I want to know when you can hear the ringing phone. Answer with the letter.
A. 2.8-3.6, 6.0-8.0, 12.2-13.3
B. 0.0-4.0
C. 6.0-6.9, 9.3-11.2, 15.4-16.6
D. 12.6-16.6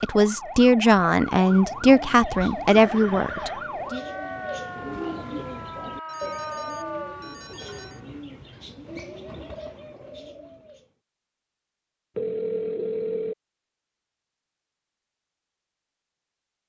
A.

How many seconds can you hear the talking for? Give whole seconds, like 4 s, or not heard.
4 s.